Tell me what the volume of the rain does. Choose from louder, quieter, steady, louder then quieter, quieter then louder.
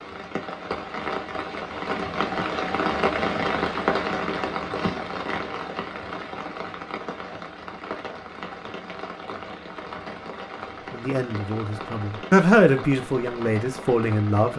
quieter.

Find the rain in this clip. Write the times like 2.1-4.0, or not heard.
0.0-14.5.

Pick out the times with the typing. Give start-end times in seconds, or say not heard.
not heard.